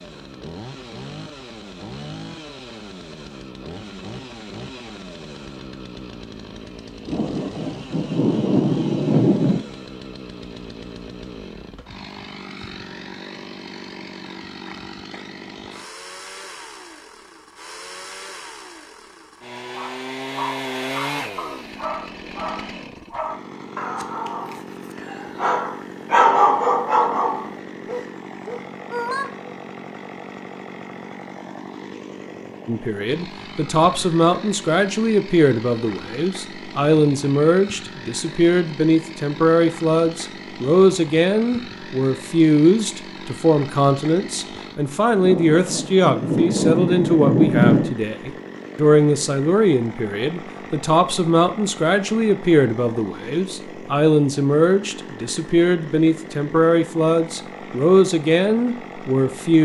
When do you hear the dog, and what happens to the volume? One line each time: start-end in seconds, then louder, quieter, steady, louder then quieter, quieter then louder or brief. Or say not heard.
19.7-29.5 louder then quieter.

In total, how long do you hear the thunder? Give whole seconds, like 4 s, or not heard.
5 s.